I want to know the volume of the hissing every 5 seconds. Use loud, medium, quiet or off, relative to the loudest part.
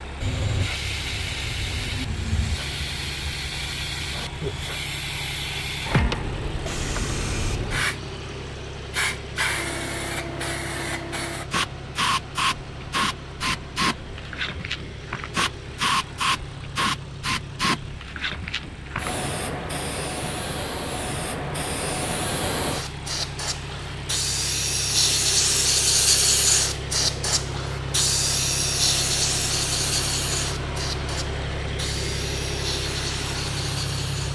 medium, medium, medium, medium, medium, loud, medium.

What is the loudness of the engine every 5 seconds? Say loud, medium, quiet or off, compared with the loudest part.
medium, medium, medium, medium, medium, loud, loud.